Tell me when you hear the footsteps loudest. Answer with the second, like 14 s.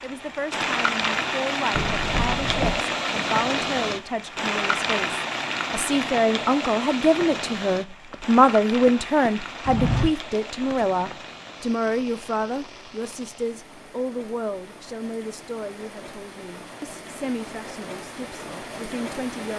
10 s.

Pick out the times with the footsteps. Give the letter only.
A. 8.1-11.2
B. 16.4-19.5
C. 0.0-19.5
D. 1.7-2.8
A.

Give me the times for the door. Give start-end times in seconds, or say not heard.
1.7-2.8.